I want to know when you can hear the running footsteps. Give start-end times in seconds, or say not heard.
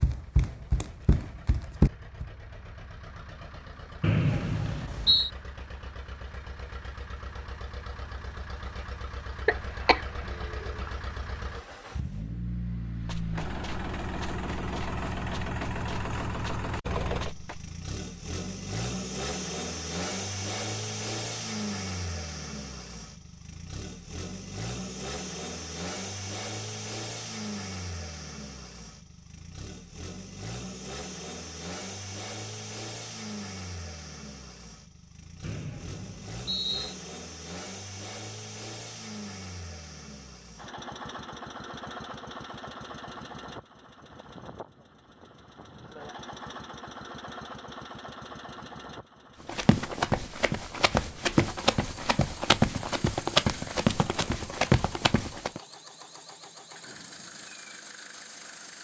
0.0-2.2, 12.9-17.7, 49.5-55.6.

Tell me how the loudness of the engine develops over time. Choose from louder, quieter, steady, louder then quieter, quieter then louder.
louder then quieter.